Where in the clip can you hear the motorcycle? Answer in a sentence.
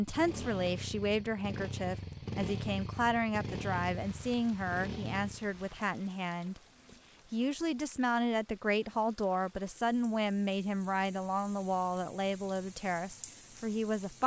You can hear the motorcycle from 0.0 to 5.5 s.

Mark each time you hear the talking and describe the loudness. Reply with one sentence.
The talking can be heard from 0.0 to 14.2 s, at a steady volume.